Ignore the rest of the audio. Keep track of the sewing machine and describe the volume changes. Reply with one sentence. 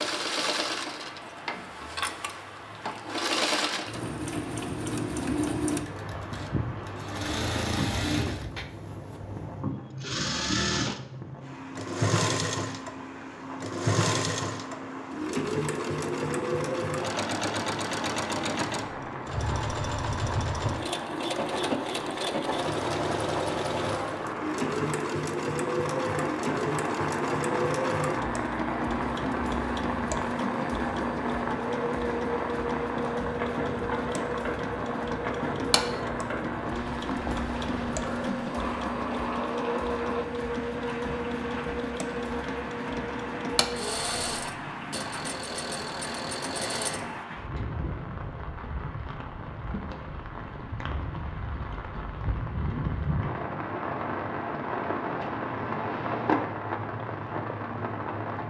The loudness of the sewing machine stays about the same.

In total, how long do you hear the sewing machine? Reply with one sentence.
You can hear the sewing machine for 47 seconds altogether.